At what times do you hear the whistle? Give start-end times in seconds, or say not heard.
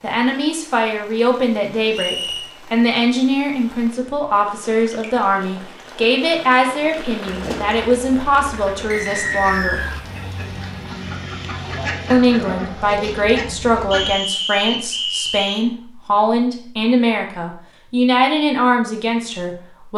1.9-2.5, 8.9-9.9, 13.9-15.7.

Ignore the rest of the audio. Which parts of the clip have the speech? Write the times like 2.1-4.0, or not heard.
0.0-9.8, 12.1-19.9.